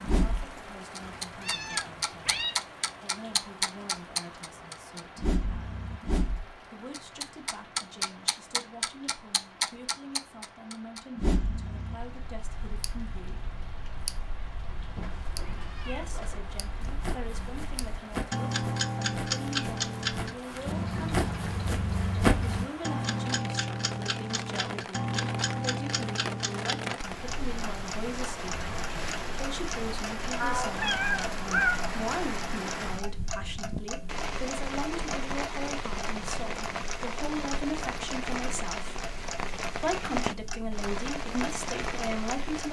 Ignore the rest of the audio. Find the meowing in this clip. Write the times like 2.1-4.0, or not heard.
1.2-2.5, 14.8-16.4, 30.4-31.8.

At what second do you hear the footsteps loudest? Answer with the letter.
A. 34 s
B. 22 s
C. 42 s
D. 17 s
B.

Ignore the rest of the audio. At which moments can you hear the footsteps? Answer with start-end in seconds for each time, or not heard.
14.9-22.6.